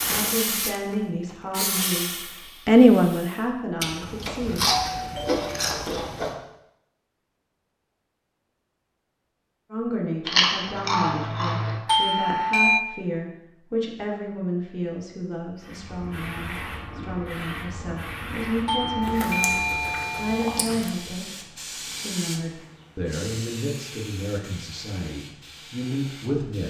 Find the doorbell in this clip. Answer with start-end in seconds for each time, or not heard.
4.5-5.9, 11.8-12.8, 18.6-20.6.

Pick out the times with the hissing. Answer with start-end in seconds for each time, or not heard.
0.0-3.5, 15.6-26.6.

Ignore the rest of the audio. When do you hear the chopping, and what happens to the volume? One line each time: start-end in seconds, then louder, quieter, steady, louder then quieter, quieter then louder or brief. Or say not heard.
not heard.